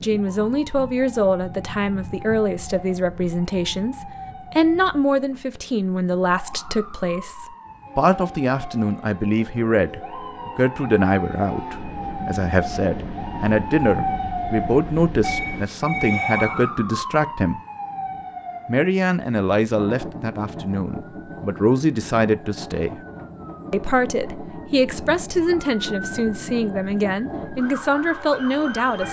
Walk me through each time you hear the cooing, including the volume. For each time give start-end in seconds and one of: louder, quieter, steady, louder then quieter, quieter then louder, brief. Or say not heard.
not heard.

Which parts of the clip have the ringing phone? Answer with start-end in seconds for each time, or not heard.
15.2-16.7.